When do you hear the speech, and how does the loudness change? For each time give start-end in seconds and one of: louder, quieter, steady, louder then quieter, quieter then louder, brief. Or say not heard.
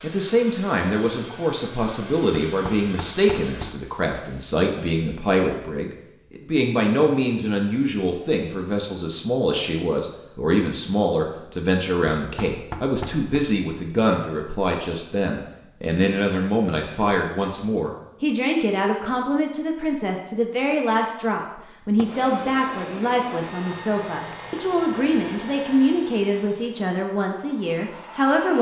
0.0-28.5 steady.